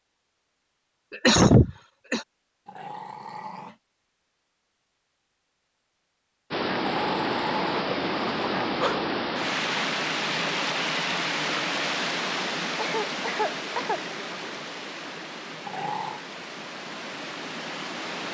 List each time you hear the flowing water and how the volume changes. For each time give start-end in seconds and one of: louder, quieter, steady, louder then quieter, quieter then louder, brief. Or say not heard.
6.5-18.3 quieter.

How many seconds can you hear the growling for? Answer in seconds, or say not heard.
4 s.